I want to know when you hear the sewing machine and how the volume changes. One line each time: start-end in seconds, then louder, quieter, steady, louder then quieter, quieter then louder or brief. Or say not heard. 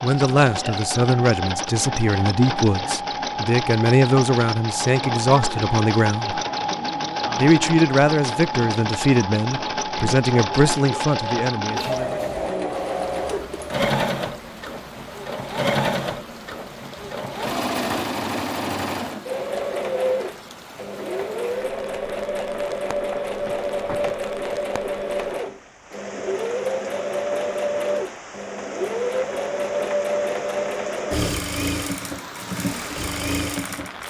0.0-34.0 steady.